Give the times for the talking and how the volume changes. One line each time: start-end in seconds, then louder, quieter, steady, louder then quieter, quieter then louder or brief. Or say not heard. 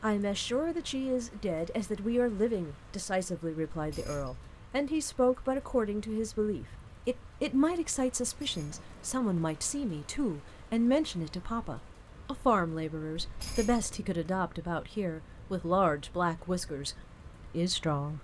0.0-18.1 steady.